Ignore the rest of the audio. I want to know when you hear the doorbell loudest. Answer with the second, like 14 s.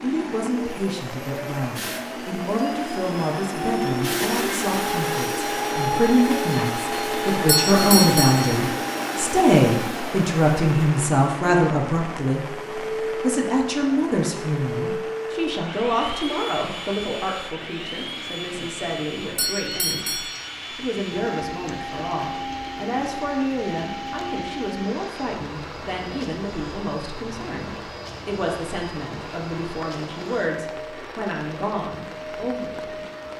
8 s.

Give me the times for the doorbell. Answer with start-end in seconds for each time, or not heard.
7.5-8.6, 19.4-20.5.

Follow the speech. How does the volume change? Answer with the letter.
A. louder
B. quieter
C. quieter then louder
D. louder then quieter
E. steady
D.